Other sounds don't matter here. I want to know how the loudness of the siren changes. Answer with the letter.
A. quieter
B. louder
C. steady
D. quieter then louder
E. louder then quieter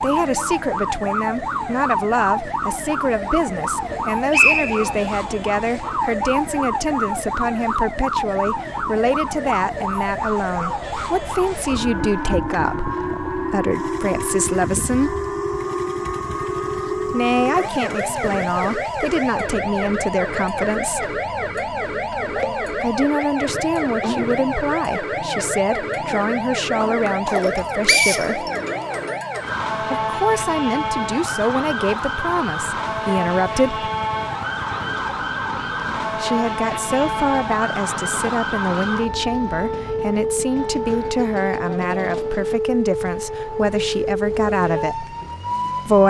C.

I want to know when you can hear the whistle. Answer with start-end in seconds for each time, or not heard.
3.9-5.0, 27.4-28.5.